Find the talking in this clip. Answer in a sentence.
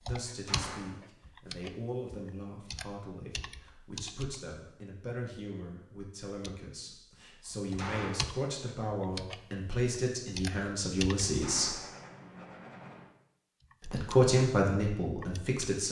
You can hear the talking from 0.0 to 11.8 s and from 13.8 to 15.8 s.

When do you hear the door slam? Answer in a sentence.
The door slam can be heard from 0.2 to 1.0 s, from 7.5 to 8.3 s and from 11.2 to 11.9 s.